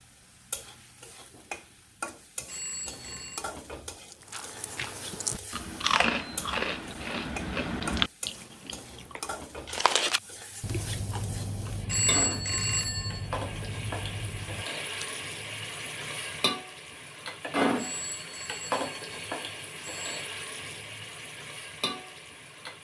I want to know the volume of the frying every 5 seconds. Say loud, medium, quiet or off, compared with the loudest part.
medium, medium, medium, loud, medium.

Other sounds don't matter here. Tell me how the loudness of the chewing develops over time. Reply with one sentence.
The loudness of the chewing goes down.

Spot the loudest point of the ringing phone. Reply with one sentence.
The volume of the ringing phone peaks at 12 seconds.